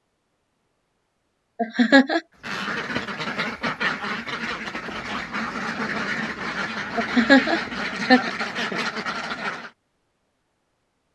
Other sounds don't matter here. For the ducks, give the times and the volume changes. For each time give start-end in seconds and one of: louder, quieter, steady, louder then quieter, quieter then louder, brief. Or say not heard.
2.4-9.7 steady.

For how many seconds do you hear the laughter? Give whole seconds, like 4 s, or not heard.
3 s.